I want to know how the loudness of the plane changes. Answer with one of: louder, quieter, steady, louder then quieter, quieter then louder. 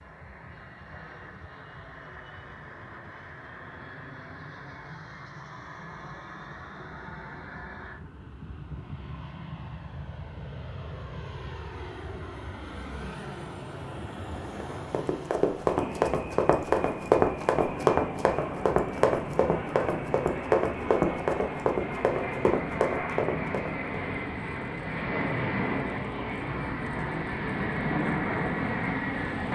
louder.